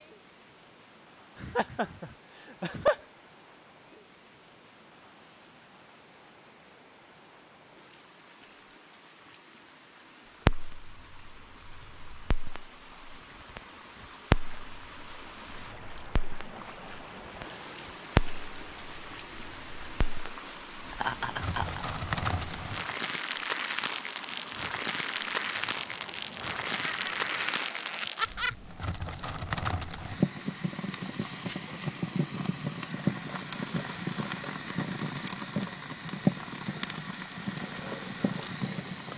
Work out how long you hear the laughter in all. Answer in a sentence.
The laughter can be heard for 4 seconds in total.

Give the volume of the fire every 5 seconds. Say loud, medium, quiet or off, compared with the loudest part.
off, off, loud, loud, loud, loud, loud, loud.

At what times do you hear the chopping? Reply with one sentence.
The chopping can't be heard in this clip.